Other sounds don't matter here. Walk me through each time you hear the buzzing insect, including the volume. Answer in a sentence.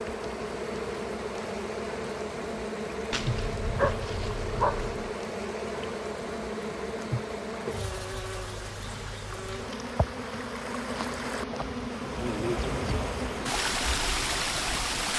The buzzing insect can be heard from 0.0 to 15.1 s, at a steady volume.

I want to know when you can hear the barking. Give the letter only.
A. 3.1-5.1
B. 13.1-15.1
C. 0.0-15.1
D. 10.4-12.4
A.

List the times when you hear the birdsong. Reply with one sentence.
You can't hear the birdsong here.